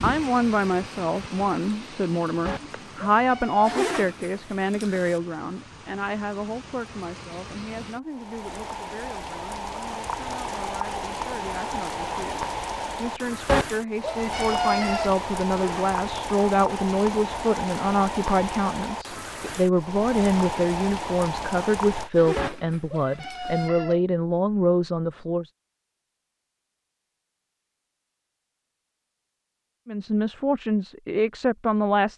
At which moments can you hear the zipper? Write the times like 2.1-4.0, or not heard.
3.6-5.2, 15.4-15.9, 22.1-23.7.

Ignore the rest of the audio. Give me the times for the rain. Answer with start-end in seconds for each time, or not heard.
0.0-22.1.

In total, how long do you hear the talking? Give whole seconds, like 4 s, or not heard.
28 s.